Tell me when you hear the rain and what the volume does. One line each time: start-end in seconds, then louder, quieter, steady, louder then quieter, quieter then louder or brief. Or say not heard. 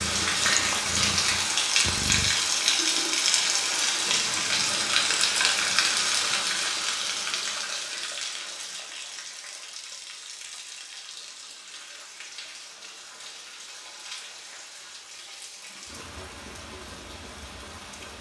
0.0-18.1 quieter.